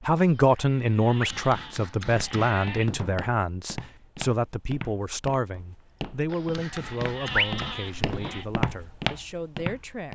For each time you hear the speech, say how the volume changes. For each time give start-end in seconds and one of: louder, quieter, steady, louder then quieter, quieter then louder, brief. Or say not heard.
0.1-10.1 quieter.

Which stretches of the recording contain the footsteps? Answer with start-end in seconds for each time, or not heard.
2.1-10.1.